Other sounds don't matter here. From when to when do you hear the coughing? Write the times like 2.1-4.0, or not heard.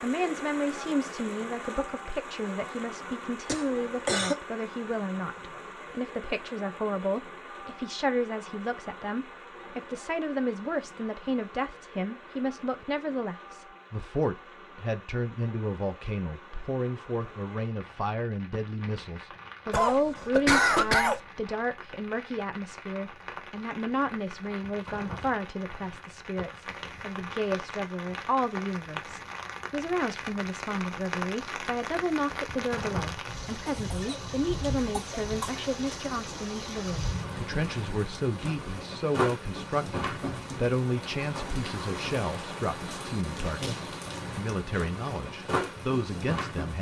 3.5-4.3, 19.7-21.2, 33.6-34.2, 35.0-36.0.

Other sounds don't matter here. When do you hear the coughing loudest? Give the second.
21 s.